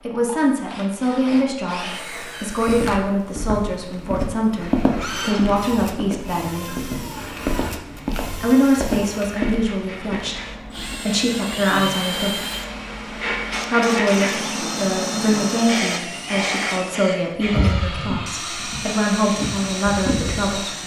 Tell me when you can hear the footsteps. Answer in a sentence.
You can hear the footsteps from 2.6 to 11.1 s.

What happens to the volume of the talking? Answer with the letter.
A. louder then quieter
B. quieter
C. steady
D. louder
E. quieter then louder
C.